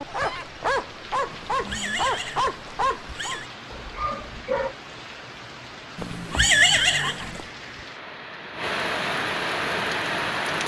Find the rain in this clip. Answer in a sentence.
You can hear the rain from 0.0 to 10.6 s.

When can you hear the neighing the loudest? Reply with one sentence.
The volume of the neighing peaks at 7 seconds.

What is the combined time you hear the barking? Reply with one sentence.
You can hear the barking for 5 seconds altogether.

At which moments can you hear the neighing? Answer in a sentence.
The neighing can be heard from 1.3 to 3.5 s and from 6.0 to 7.5 s.